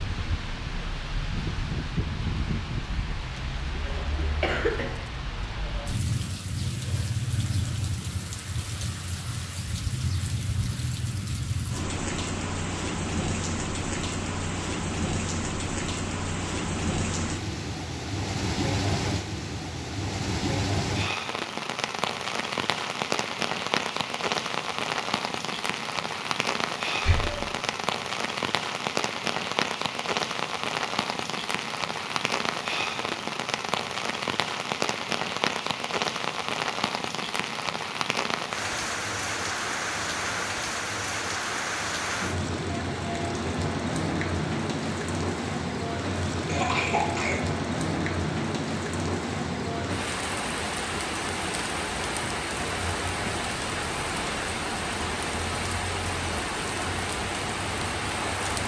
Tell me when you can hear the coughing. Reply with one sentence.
The coughing can be heard from 3.9 to 4.9 s, from 27.0 to 27.4 s and from 46.5 to 47.4 s.